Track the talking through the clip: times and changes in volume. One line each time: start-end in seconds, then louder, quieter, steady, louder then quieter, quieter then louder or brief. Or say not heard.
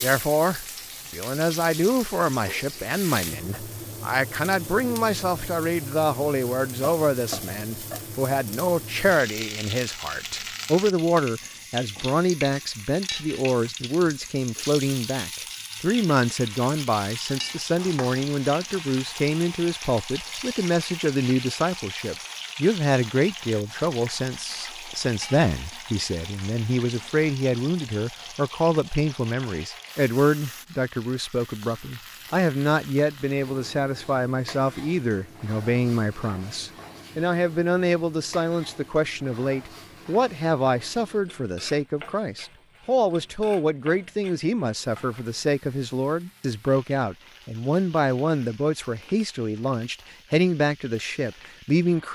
0.0-52.1 steady.